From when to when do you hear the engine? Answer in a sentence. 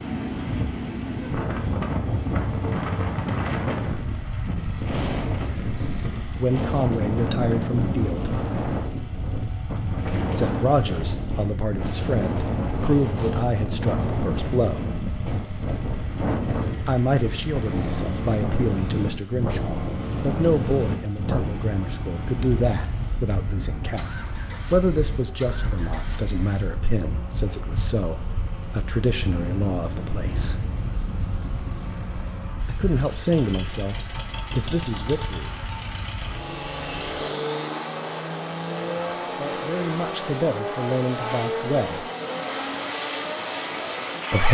The engine can be heard from 0.0 to 44.4 s.